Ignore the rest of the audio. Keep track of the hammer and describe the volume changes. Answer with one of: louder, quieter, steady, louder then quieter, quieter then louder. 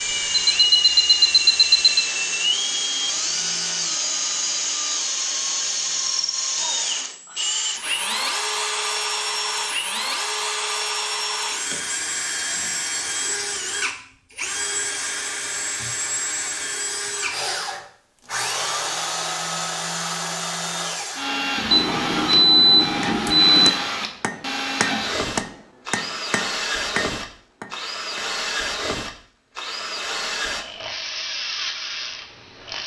quieter.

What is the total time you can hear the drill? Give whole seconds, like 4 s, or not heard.
33 s.